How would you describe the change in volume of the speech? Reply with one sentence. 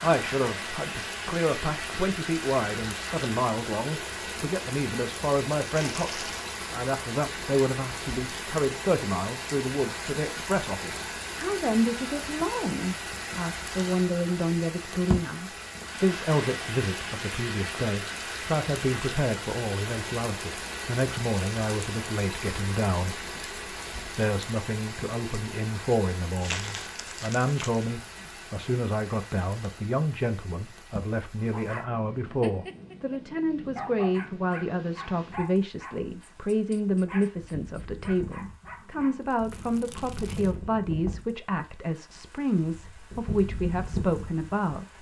The loudness of the speech stays about the same.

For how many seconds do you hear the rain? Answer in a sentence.
You can hear the rain for 45 seconds altogether.